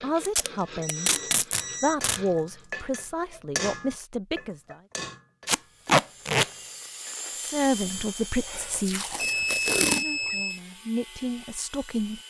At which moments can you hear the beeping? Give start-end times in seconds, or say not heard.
0.6-2.0, 8.3-10.6.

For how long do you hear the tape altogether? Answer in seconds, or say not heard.
4 s.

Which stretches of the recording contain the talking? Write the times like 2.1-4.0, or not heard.
0.0-1.1, 1.8-4.8, 7.3-12.2.